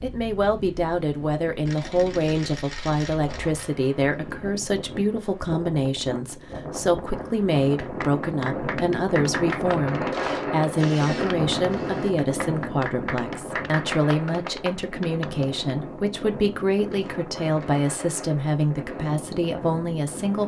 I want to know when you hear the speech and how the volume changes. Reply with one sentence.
You can hear the speech from 0.0 to 20.4 s, at a steady volume.